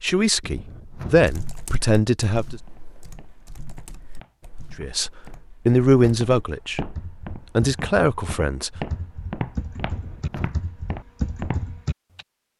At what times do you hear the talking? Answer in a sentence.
The talking can be heard from 0.0 to 2.6 s and from 4.8 to 8.7 s.